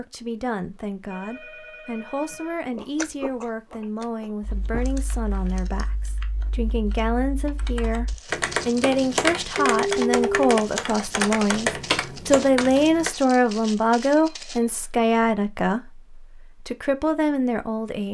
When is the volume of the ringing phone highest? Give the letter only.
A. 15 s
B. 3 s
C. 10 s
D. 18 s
C.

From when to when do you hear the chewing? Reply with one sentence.
The chewing can be heard from 2.7 to 5.0 s.